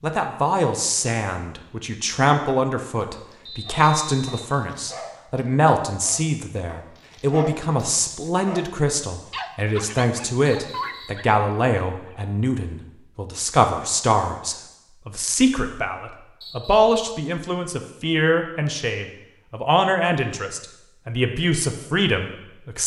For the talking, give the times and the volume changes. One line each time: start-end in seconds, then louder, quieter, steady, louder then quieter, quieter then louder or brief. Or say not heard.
0.0-22.8 steady.